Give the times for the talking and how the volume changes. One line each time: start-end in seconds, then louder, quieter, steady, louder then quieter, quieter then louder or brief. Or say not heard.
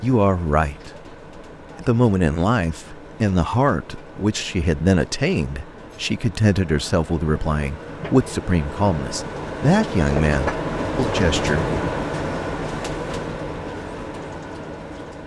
0.0-0.9 brief
1.8-11.7 steady.